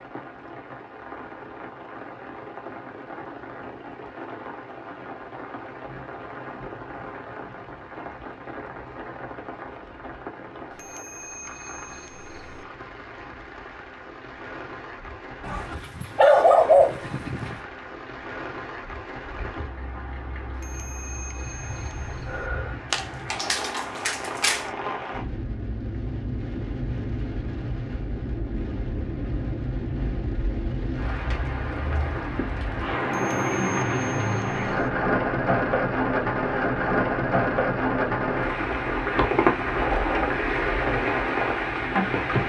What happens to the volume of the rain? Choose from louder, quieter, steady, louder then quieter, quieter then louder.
louder.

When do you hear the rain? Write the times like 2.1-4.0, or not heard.
0.0-42.4.